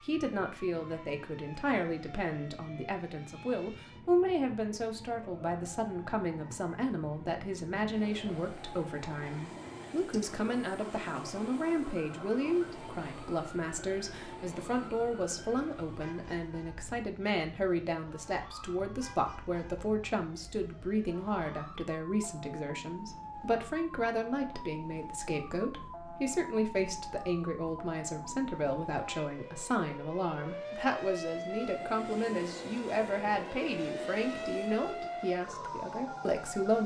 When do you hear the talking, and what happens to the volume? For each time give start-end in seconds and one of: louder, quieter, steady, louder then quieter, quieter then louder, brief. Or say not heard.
0.0-36.8 steady.